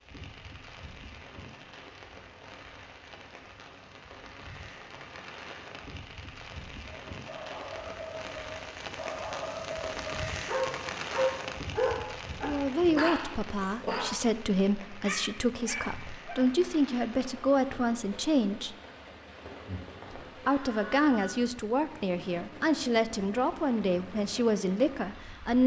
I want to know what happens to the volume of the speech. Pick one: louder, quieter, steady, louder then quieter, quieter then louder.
steady.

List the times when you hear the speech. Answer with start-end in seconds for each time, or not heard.
12.4-18.8, 20.1-25.6.